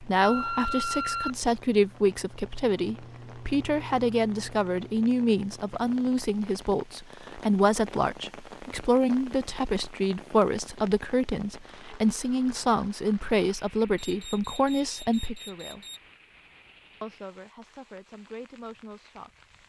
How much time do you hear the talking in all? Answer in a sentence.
The talking can be heard for 18 seconds in total.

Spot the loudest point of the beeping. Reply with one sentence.
The volume of the beeping peaks at 1 second.